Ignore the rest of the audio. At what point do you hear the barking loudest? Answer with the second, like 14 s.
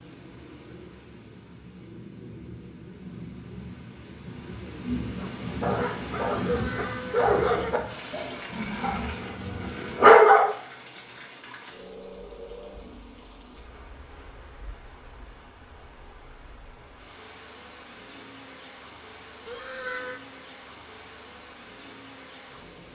10 s.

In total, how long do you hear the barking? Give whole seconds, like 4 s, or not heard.
5 s.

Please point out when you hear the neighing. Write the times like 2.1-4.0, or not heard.
6.3-7.8, 19.4-20.2.